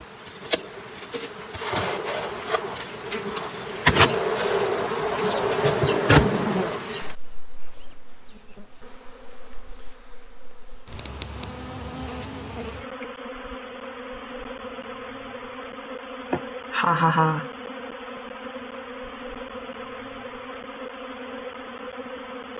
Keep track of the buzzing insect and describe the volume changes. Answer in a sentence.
The volume of the buzzing insect goes down.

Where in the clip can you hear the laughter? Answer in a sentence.
You can hear the laughter from 16.3 to 17.5 s.